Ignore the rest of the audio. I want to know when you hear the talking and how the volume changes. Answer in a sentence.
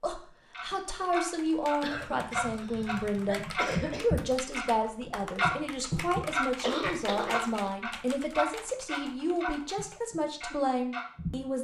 You can hear the talking from 0.0 to 11.5 s, at a steady volume.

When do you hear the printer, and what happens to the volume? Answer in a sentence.
You can't hear the printer here.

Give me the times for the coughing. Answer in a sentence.
You can hear the coughing from 1.8 to 4.1 s and from 6.6 to 7.7 s.